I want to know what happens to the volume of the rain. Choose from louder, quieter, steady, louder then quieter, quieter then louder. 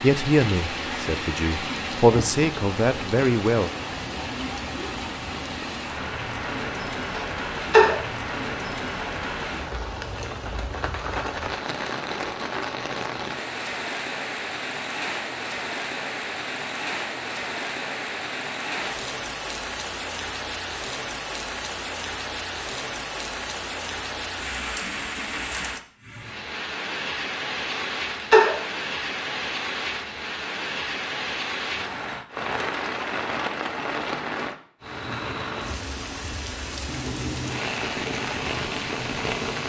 steady.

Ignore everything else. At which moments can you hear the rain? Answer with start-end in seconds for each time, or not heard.
0.0-39.6.